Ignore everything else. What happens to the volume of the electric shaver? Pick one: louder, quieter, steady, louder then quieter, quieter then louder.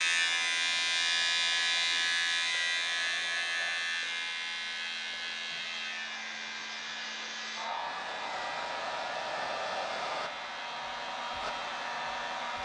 quieter.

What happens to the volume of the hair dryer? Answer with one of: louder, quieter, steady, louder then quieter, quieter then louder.
louder.